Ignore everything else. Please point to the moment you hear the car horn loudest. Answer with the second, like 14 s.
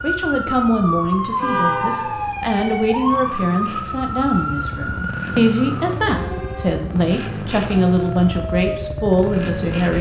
2 s.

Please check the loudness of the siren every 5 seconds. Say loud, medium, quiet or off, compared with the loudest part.
loud, medium.